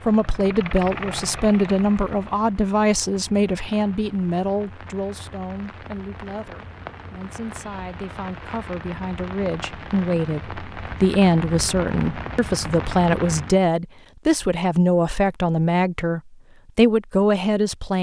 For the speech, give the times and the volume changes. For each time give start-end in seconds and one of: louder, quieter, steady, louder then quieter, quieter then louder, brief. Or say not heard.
0.0-17.9 quieter then louder.